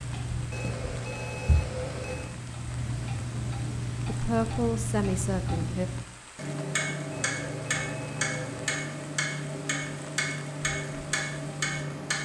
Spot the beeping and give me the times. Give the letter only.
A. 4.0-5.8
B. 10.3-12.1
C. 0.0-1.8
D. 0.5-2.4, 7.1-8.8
D.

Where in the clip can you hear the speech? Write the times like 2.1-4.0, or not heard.
4.0-5.8.